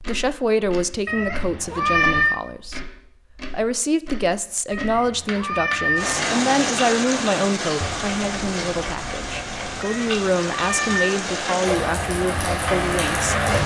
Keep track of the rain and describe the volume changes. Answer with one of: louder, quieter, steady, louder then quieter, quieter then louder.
quieter then louder.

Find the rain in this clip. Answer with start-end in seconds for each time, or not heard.
6.0-13.6.